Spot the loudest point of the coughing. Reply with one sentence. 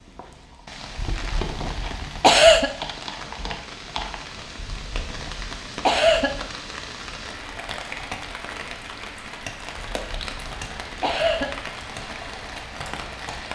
The volume of the coughing peaks at 2 seconds.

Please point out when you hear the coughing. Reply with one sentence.
You can hear the coughing from 0.9 to 2.7 s, from 4.5 to 6.4 s and from 9.8 to 11.6 s.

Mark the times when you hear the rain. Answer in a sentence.
You can hear the rain from 0.0 to 13.5 s.